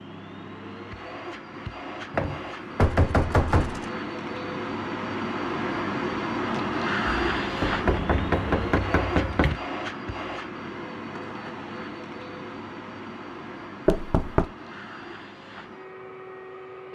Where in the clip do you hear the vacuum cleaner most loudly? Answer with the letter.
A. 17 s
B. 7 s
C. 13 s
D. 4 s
B.